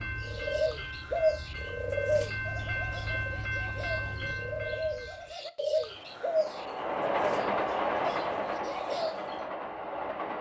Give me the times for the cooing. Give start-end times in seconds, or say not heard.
0.0-9.4.